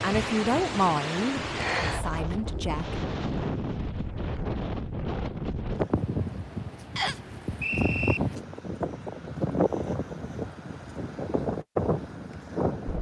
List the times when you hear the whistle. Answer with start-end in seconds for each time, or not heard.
7.0-8.2.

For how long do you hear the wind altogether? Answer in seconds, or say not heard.
13 s.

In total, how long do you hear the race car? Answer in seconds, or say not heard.
not heard.